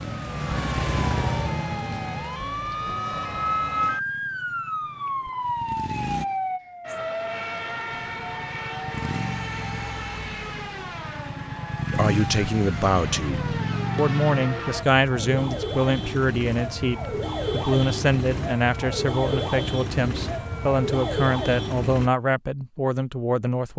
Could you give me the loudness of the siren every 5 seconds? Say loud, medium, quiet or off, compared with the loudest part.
loud, loud, medium, loud, loud.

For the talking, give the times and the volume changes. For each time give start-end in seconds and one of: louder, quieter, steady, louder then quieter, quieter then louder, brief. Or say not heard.
11.9-23.7 steady.